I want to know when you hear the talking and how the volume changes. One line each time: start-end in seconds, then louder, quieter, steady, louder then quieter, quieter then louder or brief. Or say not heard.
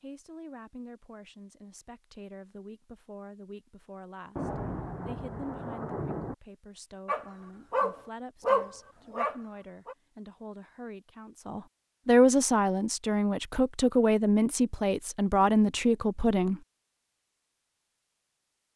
0.0-16.6 louder.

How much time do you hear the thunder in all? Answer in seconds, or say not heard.
2 s.